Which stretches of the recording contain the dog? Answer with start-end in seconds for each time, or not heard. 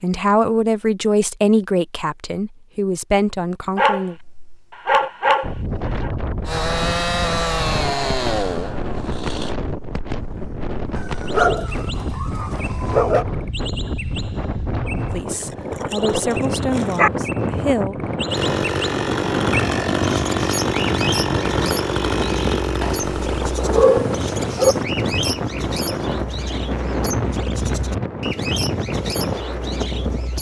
3.8-6.1, 10.9-13.2, 15.3-17.1, 22.8-24.8.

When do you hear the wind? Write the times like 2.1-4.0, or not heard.
5.4-30.3.